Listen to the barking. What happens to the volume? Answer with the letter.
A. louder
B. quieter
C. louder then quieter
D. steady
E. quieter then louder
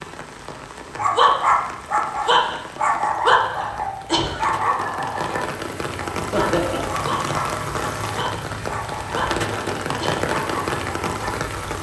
B.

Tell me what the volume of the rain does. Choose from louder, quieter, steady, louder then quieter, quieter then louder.
louder.